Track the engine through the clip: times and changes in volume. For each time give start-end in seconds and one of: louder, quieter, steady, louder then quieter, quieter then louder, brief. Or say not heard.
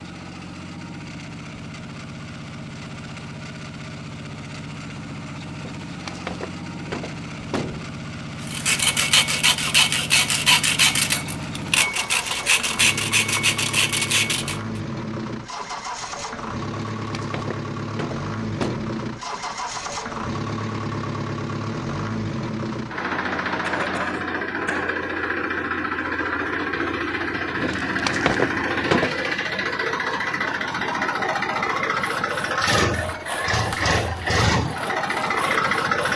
0.0-36.1 louder.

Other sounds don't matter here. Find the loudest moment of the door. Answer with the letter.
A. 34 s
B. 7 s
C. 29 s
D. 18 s
C.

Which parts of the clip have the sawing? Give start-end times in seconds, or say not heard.
8.4-14.8, 32.0-36.1.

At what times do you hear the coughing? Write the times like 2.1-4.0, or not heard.
23.6-24.9.